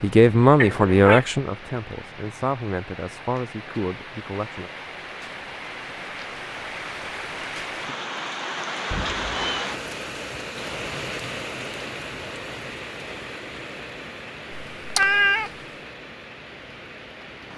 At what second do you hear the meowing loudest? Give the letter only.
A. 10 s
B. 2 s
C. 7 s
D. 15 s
D.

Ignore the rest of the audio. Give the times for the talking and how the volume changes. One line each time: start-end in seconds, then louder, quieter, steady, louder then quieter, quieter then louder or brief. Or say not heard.
0.0-4.7 quieter.